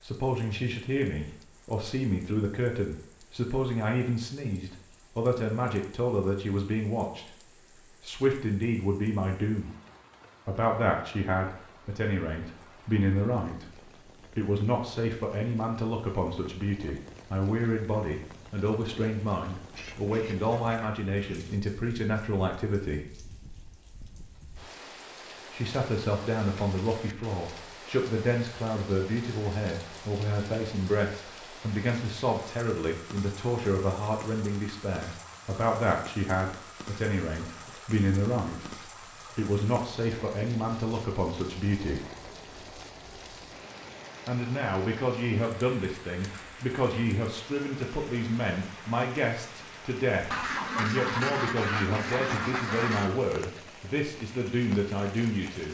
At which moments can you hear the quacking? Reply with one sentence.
You can hear the quacking from 19.7 to 21.6 s and from 50.3 to 53.2 s.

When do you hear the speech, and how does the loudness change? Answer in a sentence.
The speech can be heard from 0.0 to 7.3 s, at a steady volume; briefly from 8.0 to 9.7 s; from 10.4 to 23.1 s, at a steady volume; from 25.5 to 42.0 s, at a steady volume; and from 44.2 to 55.6 s, at a steady volume.